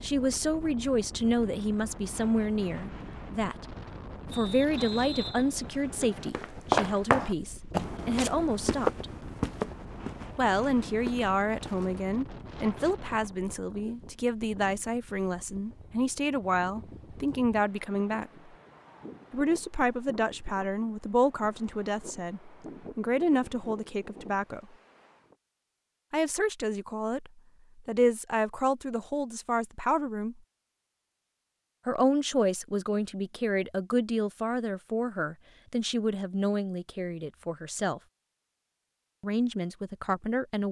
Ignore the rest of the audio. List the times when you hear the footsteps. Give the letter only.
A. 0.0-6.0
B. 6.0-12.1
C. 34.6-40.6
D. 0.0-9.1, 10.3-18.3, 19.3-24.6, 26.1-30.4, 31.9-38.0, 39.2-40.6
B.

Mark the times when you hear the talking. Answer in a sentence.
The talking can be heard from 0.0 to 9.1 s, from 10.3 to 18.3 s, from 19.3 to 24.6 s, from 26.1 to 30.4 s, from 31.9 to 38.0 s and from 39.2 to 40.6 s.